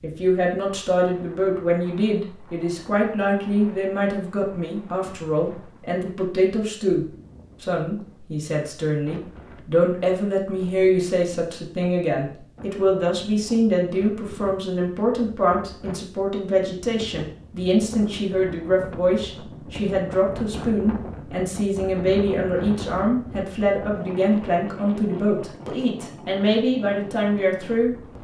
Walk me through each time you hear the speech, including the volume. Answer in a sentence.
You can hear the speech from 0.0 to 27.9 s, at a steady volume.